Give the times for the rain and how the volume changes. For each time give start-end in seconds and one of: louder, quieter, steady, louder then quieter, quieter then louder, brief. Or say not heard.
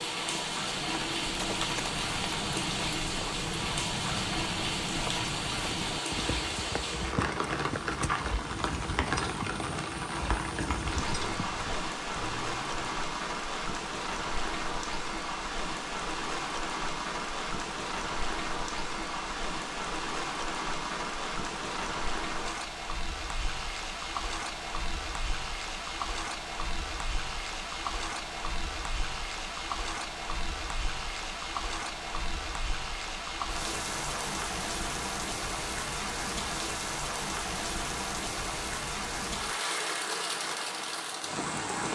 0.0-41.9 steady.